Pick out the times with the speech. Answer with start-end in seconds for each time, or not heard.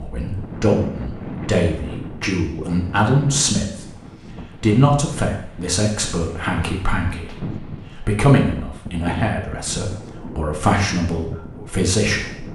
0.0-3.9, 4.6-12.4.